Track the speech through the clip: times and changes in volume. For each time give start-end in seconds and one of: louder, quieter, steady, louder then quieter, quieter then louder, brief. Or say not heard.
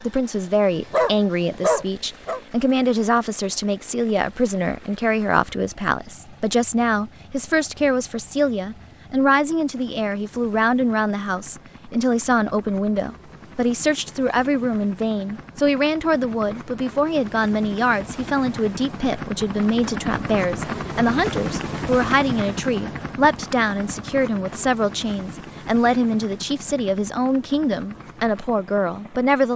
0.0-29.5 steady.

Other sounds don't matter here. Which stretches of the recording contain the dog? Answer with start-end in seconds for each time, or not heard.
0.8-2.4.